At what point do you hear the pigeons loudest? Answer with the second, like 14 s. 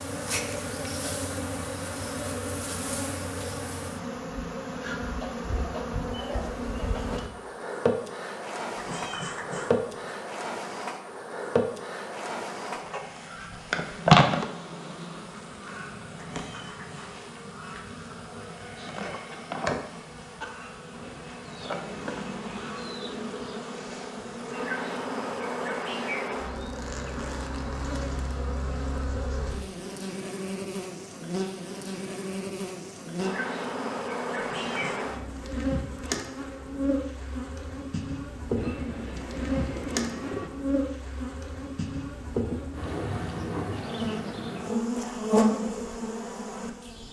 40 s.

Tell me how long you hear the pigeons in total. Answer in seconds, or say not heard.
7 s.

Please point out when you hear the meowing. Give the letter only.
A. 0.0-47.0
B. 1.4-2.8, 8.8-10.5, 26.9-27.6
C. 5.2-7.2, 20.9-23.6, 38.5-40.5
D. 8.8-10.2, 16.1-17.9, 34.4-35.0
D.